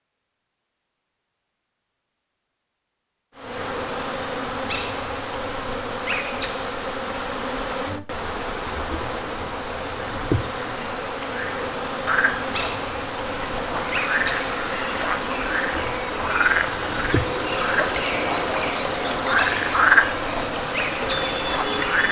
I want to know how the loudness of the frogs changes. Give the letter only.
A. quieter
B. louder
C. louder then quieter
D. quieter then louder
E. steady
B.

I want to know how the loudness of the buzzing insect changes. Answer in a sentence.
The volume of the buzzing insect stays about the same.